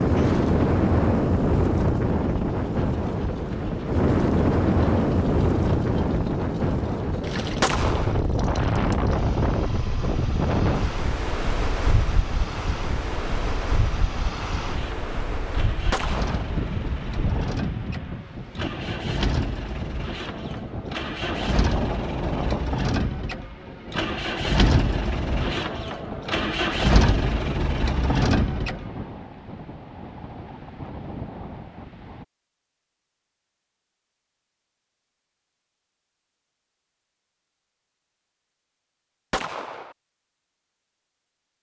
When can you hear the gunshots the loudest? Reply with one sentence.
The loudest moment of the gunshots is at 8 seconds.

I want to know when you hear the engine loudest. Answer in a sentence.
The loudest moment of the engine is at 27 seconds.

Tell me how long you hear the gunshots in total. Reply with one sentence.
You can hear the gunshots for 2 seconds altogether.